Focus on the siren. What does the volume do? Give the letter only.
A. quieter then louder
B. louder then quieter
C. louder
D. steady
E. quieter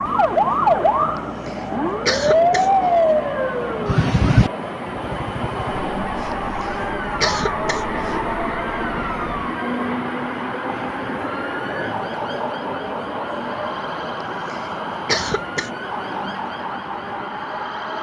E.